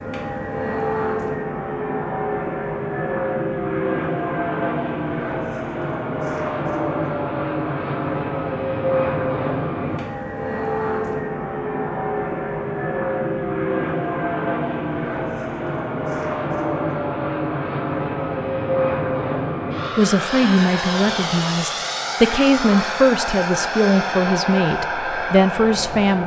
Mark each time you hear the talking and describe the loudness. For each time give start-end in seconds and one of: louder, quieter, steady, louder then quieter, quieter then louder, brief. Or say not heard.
19.9-26.2 steady.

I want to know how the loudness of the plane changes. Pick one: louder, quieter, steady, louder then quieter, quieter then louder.
steady.